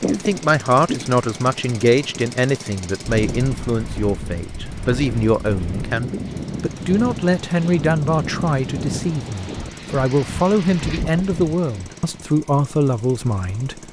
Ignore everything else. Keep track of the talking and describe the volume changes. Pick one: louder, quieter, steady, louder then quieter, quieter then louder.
steady.